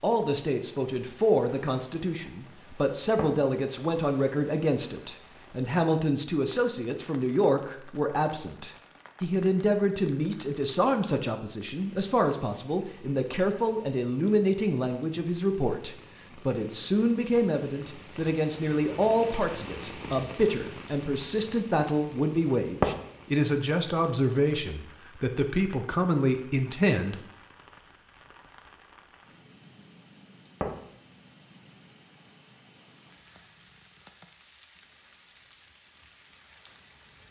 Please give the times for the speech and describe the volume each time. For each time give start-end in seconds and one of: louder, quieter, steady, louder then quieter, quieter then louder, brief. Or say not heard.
0.0-27.2 steady.